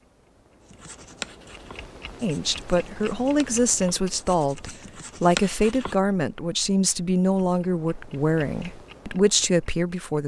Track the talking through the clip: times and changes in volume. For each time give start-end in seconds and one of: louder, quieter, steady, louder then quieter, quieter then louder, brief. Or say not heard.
2.2-10.2 steady.